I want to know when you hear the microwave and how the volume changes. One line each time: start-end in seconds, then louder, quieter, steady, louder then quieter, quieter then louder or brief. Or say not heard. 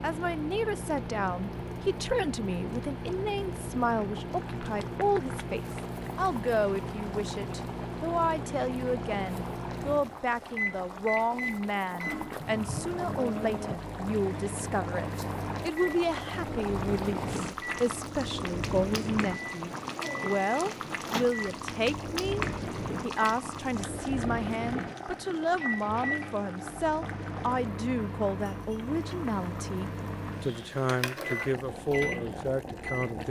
0.0-33.1 steady.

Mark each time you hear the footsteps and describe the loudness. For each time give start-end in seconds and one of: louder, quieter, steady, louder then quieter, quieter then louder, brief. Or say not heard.
not heard.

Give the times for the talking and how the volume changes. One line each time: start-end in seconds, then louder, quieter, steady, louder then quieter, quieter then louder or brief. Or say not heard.
0.0-33.2 steady.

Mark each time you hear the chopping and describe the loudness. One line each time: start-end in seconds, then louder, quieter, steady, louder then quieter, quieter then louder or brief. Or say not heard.
not heard.